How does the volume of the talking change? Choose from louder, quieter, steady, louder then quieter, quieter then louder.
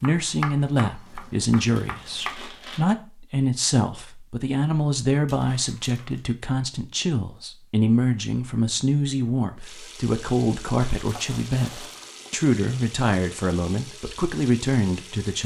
steady.